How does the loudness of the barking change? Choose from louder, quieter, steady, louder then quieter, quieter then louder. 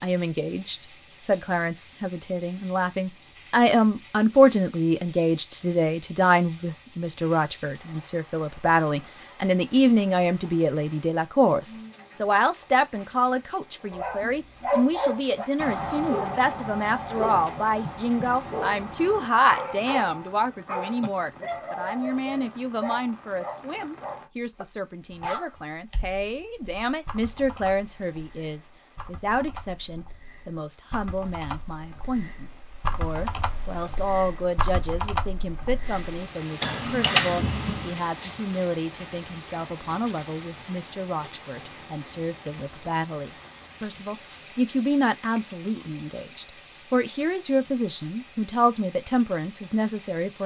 quieter.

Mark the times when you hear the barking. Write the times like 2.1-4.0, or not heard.
13.9-25.6.